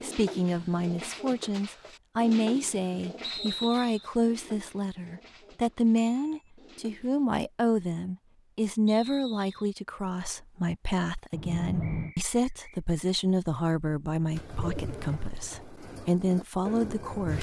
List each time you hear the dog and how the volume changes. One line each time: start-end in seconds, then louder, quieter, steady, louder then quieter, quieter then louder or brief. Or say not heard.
not heard.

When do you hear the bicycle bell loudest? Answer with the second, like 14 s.
12 s.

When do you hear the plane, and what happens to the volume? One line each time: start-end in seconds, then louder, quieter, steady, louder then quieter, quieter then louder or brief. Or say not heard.
not heard.